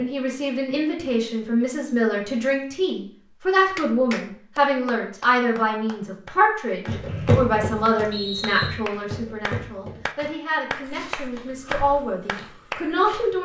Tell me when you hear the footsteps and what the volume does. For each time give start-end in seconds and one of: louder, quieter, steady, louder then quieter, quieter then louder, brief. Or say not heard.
6.8-13.3 quieter.